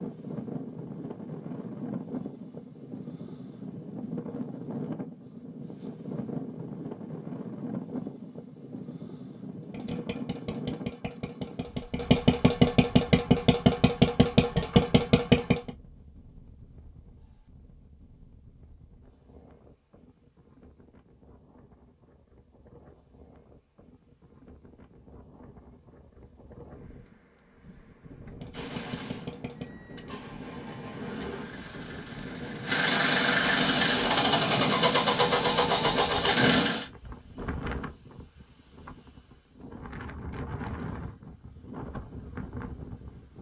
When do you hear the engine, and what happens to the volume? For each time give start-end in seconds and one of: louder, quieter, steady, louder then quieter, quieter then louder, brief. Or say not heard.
9.7-15.7 louder
28.4-36.9 louder.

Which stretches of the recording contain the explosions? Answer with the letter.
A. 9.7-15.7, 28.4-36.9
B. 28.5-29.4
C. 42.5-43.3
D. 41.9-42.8
B.